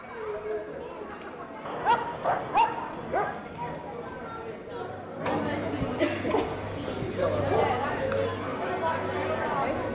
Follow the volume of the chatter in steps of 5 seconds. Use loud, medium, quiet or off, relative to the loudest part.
medium, loud.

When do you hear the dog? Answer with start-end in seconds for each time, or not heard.
1.6-3.4, 6.3-8.1.